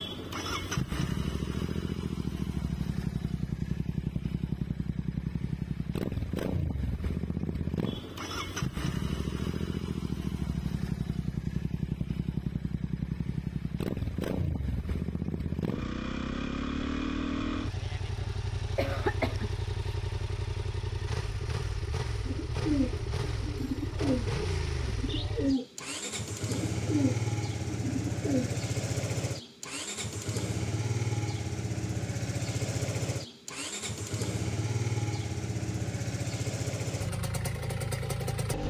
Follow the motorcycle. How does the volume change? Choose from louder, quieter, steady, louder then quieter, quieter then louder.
steady.